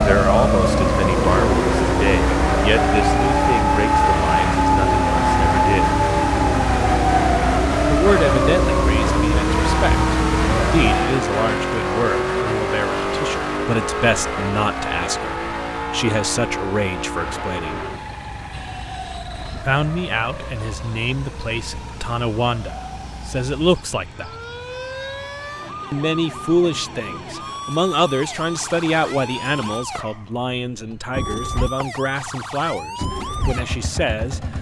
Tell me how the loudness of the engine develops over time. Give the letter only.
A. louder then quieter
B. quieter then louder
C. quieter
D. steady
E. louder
B.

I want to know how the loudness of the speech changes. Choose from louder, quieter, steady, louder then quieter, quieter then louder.
steady.